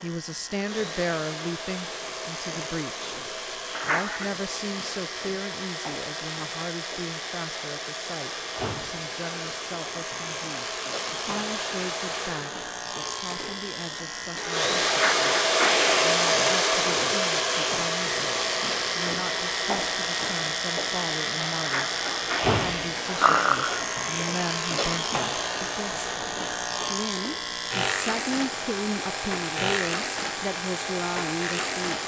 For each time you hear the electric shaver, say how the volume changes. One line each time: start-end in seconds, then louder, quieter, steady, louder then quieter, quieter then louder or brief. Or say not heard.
0.0-32.0 louder.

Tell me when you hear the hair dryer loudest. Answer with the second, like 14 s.
16 s.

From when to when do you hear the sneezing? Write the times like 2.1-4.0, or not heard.
3.7-4.3, 14.8-16.1, 21.6-23.8.